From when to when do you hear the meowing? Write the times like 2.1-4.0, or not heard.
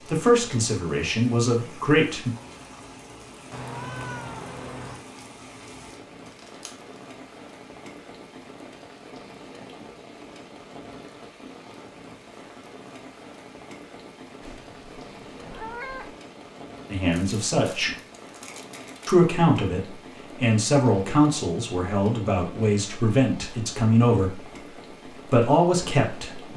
3.5-5.0, 14.4-16.1.